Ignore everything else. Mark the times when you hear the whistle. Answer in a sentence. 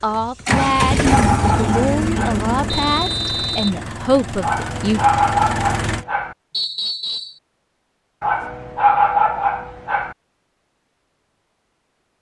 The whistle can be heard from 2.7 to 3.8 s and from 6.5 to 7.4 s.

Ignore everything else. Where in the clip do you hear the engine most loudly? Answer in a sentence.
The loudest moment of the engine is at 1 second.